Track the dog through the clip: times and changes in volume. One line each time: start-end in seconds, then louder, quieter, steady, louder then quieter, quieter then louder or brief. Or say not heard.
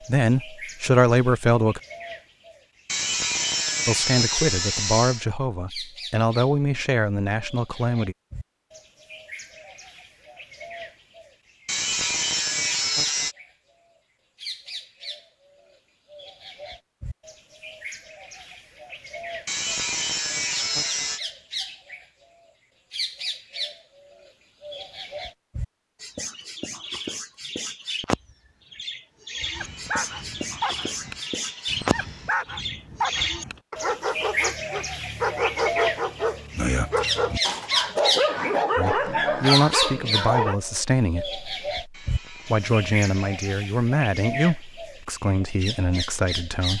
29.6-40.5 louder.